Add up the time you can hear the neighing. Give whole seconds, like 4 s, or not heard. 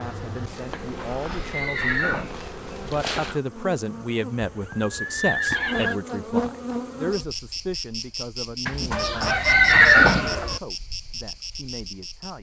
5 s.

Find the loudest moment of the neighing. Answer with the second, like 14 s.
10 s.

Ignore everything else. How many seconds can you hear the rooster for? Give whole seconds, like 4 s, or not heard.
2 s.